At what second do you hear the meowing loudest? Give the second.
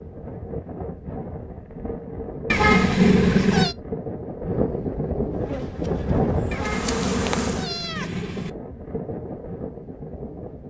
3 s.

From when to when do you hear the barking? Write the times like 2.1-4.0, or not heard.
not heard.